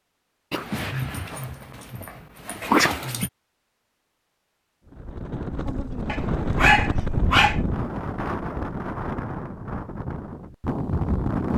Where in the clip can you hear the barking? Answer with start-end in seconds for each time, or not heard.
0.5-3.3, 6.0-7.6.